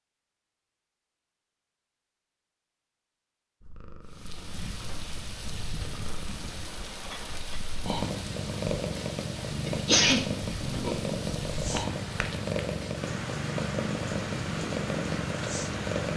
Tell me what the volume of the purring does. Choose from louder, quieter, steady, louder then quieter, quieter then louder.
louder.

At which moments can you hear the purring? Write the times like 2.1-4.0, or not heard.
3.6-16.1.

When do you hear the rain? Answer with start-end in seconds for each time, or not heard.
4.0-16.1.